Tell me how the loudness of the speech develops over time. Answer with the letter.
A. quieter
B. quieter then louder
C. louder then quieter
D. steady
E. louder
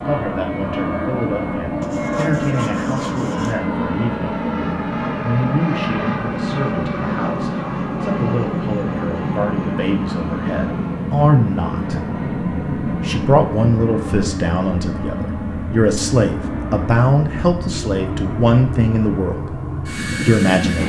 E.